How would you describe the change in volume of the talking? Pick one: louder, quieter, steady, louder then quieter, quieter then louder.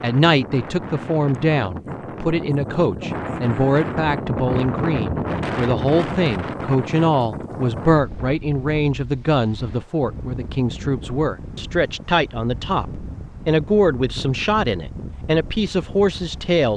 steady.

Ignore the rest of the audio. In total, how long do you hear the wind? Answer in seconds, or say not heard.
17 s.